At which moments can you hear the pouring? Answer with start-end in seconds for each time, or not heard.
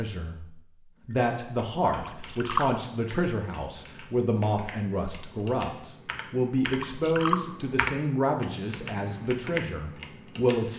1.9-2.6, 6.7-7.4.